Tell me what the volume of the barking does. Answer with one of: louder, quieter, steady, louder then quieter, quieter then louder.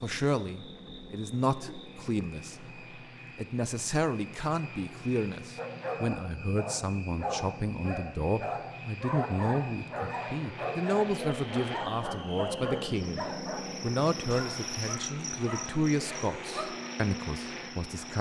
quieter.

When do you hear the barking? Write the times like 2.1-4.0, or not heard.
5.5-16.6.